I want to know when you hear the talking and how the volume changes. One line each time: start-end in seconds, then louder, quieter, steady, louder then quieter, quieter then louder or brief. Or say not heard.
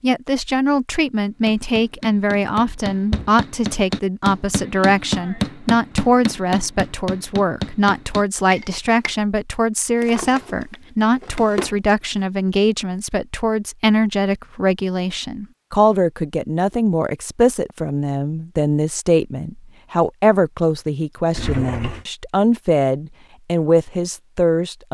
0.0-24.9 steady.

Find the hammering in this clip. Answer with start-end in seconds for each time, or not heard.
1.4-9.2.